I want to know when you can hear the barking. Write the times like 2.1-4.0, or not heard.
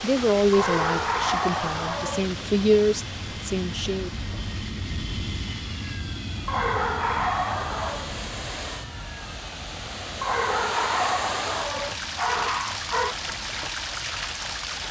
0.5-2.3, 6.5-8.2, 10.2-13.2.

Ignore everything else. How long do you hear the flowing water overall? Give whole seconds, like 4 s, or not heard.
15 s.